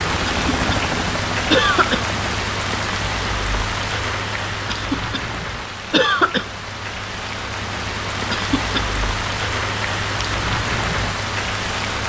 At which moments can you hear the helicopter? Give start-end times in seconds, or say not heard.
0.0-2.2.